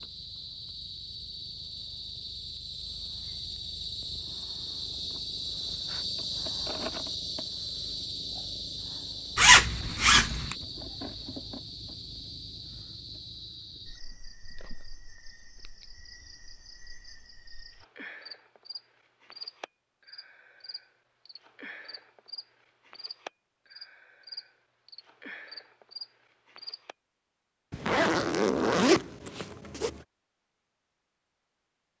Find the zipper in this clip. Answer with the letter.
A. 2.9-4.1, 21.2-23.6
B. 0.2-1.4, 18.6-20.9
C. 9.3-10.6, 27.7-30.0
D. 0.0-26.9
C.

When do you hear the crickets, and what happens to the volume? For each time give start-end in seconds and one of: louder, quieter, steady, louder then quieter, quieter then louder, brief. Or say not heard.
0.0-26.9 quieter.